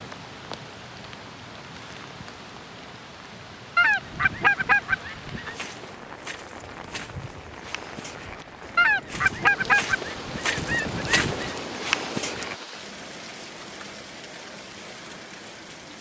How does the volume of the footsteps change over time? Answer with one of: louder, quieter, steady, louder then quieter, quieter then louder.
louder.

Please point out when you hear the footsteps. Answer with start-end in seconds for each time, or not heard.
5.5-12.6.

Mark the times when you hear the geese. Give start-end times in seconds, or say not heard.
3.8-5.5, 8.8-11.6.